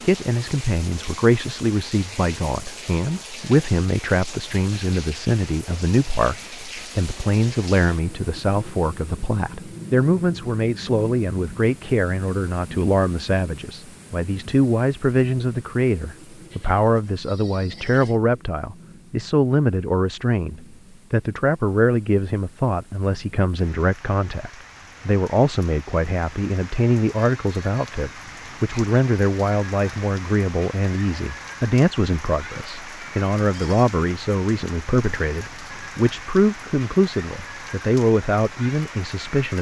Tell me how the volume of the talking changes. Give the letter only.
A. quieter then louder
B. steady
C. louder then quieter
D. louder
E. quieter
B.